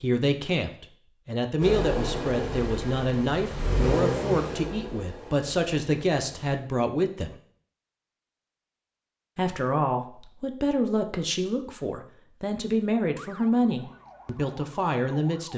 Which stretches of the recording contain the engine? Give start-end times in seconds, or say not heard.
1.6-6.6.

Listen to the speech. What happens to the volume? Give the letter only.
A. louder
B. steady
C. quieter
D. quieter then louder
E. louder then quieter
B.